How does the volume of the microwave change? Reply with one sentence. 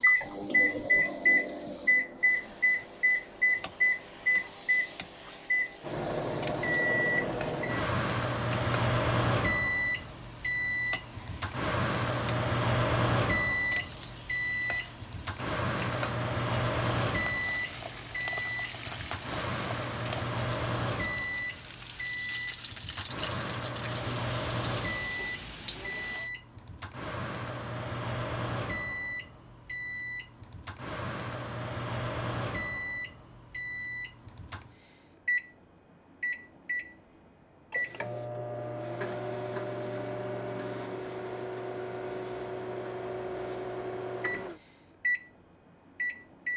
The volume of the microwave goes down.